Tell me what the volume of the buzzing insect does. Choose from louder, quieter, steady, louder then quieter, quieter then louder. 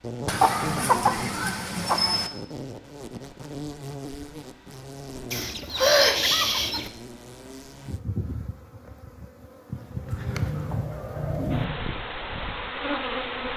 quieter then louder.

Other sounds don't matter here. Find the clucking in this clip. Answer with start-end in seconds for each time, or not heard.
0.2-2.3, 5.3-6.9, 10.1-11.7.